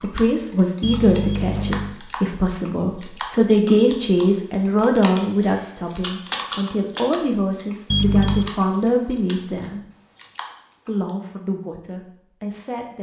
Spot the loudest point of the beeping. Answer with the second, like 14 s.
8 s.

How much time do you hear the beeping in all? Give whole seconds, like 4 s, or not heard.
2 s.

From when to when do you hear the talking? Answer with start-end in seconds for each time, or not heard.
0.0-9.8, 10.8-12.9.